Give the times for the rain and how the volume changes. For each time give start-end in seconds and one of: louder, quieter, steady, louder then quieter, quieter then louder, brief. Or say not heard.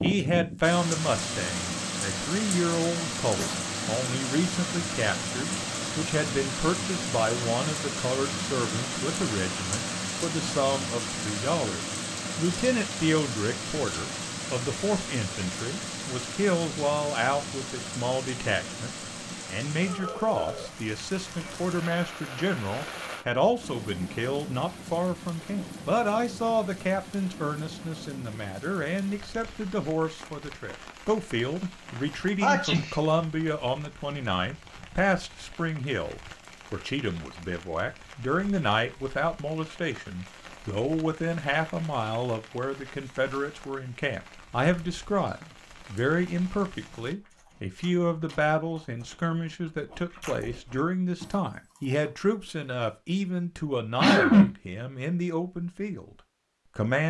0.0-47.1 quieter.